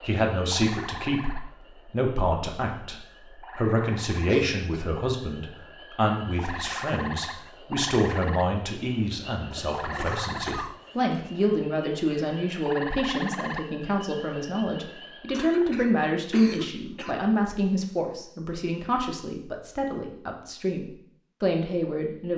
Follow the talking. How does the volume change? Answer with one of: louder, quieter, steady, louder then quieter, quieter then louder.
steady.